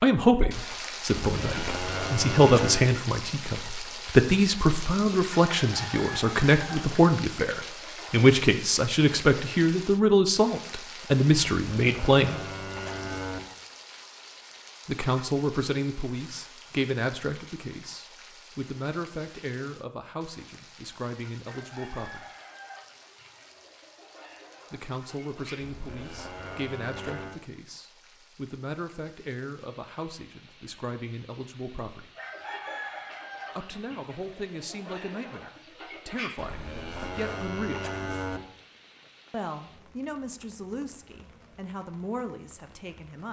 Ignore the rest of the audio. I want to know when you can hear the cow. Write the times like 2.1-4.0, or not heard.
1.1-2.9, 11.6-13.4, 25.6-27.4, 36.4-38.4.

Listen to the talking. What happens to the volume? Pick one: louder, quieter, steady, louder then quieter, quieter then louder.
quieter.